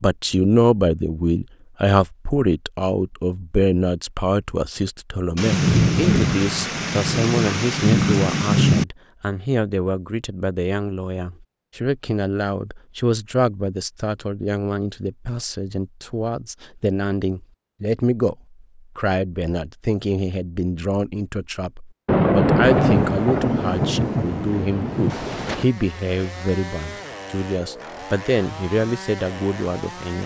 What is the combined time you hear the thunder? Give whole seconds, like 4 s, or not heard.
7 s.